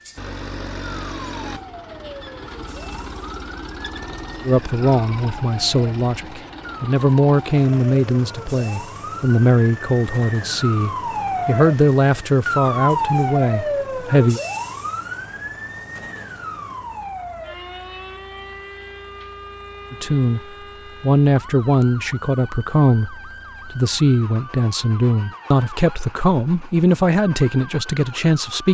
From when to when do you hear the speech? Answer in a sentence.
The speech can be heard from 4.5 to 14.4 s, from 19.9 to 20.4 s and from 21.0 to 28.6 s.